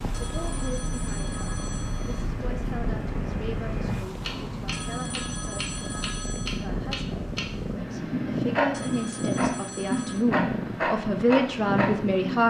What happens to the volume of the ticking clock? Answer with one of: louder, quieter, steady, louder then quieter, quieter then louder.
louder.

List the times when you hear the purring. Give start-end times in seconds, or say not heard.
0.0-12.3.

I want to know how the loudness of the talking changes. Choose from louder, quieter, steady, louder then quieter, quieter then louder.
louder.